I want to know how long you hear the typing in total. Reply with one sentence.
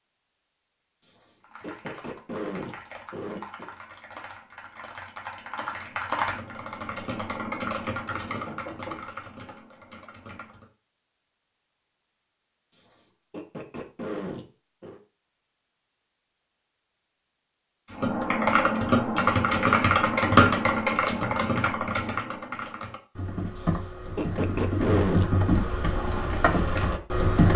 The typing can be heard for 19 seconds in total.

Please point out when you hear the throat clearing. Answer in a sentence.
You can hear the throat clearing from 1.1 to 3.7 s, from 12.8 to 15.0 s and from 23.6 to 25.2 s.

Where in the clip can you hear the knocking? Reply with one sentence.
You can hear the knocking from 8.1 to 9.1 s.